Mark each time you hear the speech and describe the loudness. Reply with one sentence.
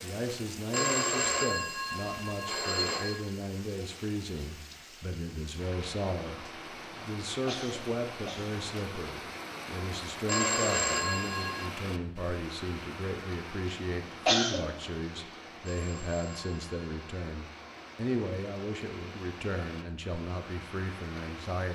The speech can be heard from 0.0 to 21.7 s, at a steady volume.